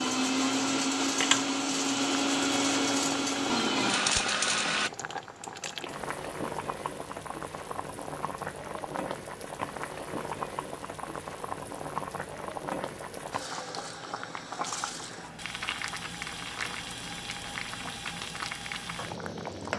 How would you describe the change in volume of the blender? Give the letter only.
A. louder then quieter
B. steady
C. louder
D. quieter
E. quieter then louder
B.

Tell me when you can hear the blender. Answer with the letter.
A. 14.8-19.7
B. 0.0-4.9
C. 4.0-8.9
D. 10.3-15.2
B.